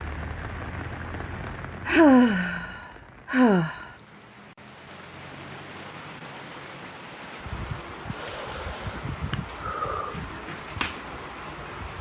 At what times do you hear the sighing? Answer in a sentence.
The sighing can be heard from 1.9 to 3.9 s and from 8.1 to 10.2 s.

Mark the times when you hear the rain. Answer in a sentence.
You can hear the rain from 0.0 to 11.9 s.